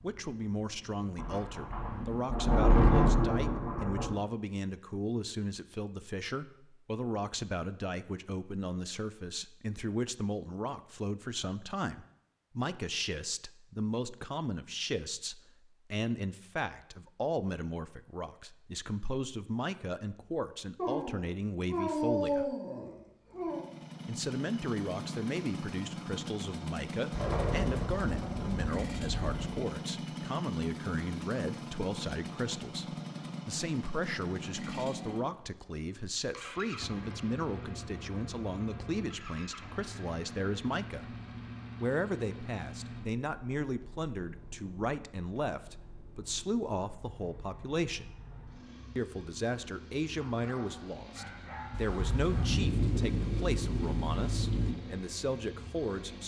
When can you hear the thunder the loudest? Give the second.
3 s.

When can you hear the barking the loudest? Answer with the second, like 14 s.
22 s.